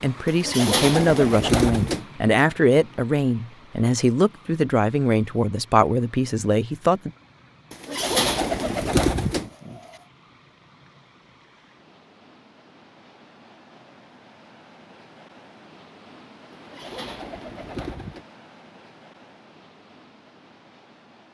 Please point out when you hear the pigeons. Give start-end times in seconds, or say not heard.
0.2-2.0, 7.7-9.8, 16.6-18.2.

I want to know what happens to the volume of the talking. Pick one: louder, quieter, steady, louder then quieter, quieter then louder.
steady.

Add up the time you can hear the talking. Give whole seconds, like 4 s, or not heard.
7 s.